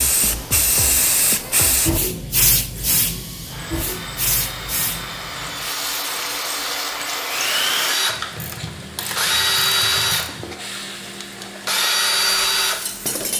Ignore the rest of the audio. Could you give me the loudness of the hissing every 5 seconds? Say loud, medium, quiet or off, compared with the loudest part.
loud, medium, quiet.